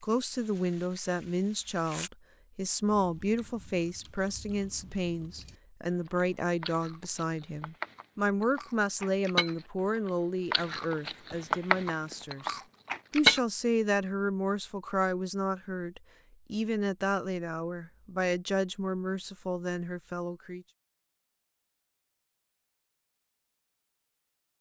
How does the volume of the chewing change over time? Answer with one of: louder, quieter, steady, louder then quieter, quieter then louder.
louder.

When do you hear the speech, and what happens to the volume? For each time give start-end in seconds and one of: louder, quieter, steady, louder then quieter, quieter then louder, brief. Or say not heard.
0.0-20.6 steady.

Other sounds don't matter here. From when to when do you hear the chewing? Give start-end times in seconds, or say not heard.
2.9-13.4.